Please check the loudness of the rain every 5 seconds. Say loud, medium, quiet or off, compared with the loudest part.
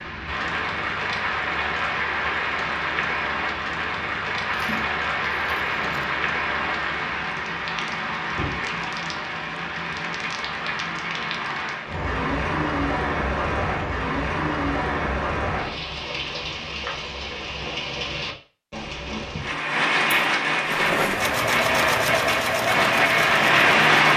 medium, medium, medium, medium, loud.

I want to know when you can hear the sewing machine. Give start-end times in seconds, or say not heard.
20.6-24.1.